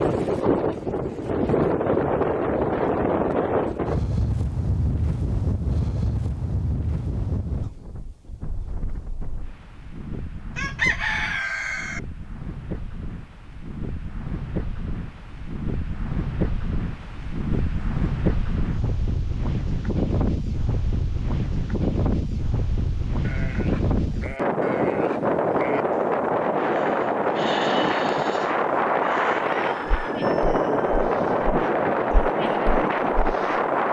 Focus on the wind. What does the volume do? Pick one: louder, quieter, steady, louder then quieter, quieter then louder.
quieter then louder.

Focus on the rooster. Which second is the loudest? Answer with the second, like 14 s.
11 s.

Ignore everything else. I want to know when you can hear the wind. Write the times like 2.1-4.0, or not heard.
0.0-33.8.